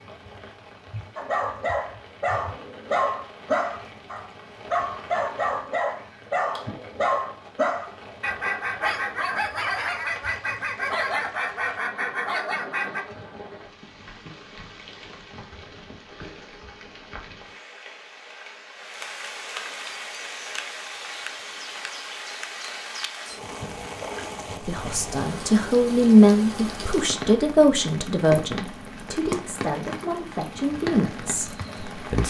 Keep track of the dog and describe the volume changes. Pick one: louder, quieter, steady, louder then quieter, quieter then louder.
steady.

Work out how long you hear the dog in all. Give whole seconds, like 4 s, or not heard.
12 s.